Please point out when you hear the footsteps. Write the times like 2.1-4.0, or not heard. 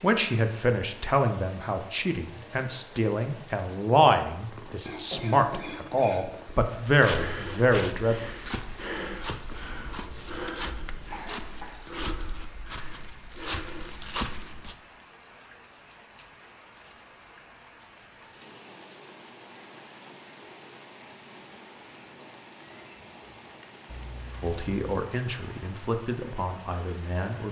6.8-14.8.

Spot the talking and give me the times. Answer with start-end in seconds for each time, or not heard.
0.0-8.2, 24.4-27.4.